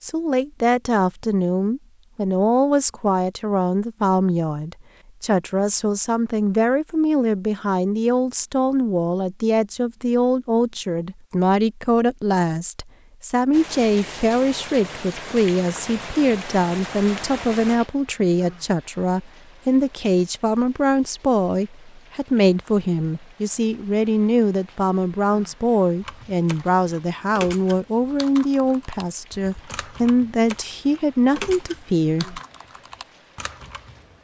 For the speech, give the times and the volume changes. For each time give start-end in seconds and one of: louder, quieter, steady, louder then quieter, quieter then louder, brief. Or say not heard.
0.0-32.4 steady.